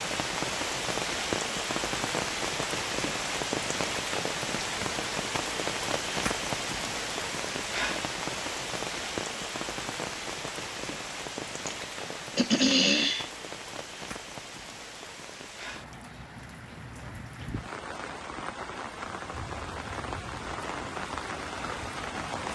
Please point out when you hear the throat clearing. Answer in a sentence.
You can hear the throat clearing from 11.7 to 13.3 s.